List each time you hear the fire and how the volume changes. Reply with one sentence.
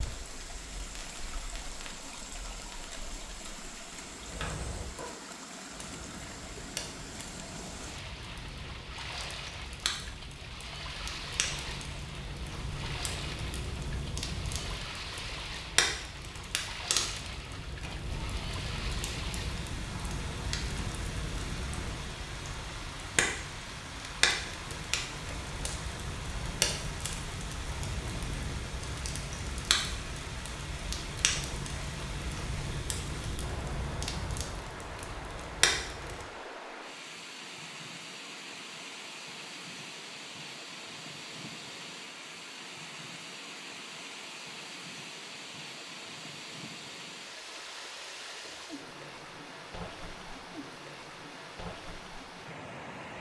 The fire can be heard from 0.0 to 36.2 s, getting louder.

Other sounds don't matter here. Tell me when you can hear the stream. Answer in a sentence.
You can hear the stream from 0.0 to 53.1 s.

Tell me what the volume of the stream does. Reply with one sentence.
The volume of the stream stays about the same.